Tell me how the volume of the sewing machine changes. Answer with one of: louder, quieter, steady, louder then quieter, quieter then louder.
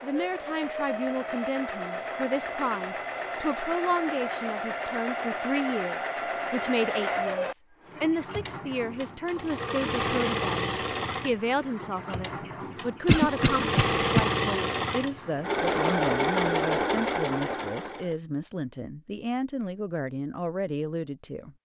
louder.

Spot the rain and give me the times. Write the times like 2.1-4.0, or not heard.
not heard.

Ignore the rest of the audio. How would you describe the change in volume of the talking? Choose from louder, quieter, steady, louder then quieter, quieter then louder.
steady.